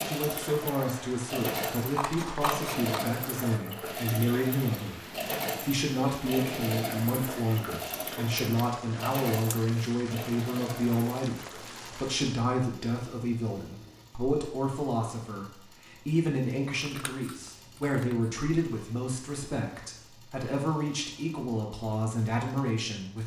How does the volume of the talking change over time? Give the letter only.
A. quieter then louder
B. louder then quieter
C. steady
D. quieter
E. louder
C.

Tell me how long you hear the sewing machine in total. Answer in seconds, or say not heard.
23 s.